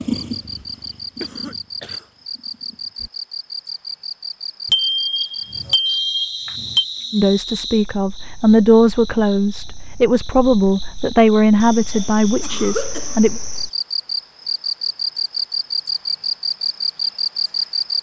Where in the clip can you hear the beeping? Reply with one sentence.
You can hear the beeping from 4.7 to 6.8 s.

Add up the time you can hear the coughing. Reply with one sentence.
The coughing can be heard for 2 seconds in total.